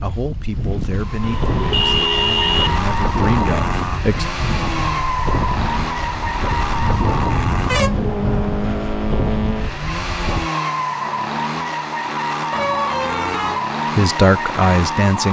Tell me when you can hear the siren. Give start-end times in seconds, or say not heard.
not heard.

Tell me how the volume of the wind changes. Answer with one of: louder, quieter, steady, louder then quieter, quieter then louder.
steady.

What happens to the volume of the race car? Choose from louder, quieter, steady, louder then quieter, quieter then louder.
steady.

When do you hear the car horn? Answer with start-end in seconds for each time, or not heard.
1.2-2.9, 6.8-8.4, 12.5-13.7.